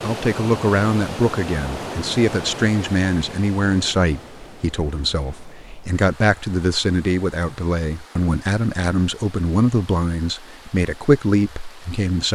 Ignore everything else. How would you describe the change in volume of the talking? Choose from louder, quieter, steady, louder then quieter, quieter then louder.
steady.